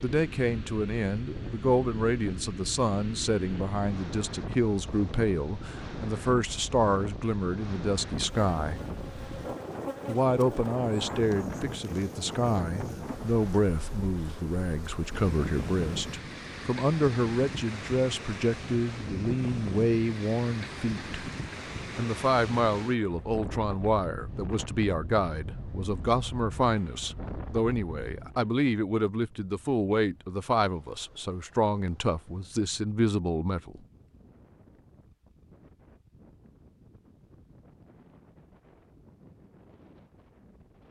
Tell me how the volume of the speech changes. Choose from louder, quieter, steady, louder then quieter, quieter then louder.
steady.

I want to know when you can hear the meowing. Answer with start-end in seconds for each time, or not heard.
not heard.